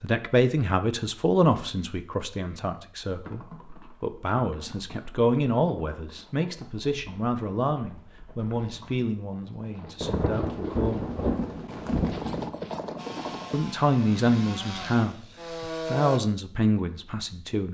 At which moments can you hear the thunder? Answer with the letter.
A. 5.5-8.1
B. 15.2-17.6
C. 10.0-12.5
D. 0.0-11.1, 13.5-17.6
C.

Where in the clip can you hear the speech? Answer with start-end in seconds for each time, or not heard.
0.0-11.1, 13.5-17.6.